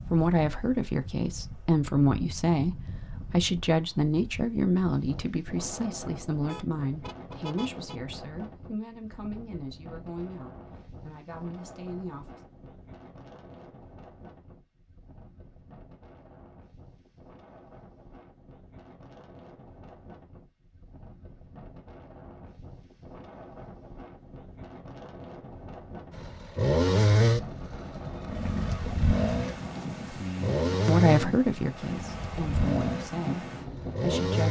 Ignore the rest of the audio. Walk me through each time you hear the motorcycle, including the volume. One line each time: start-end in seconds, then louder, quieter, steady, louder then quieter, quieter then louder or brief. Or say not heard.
26.1-34.4 quieter.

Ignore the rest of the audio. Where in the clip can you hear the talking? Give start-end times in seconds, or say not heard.
0.1-12.4, 30.1-34.4.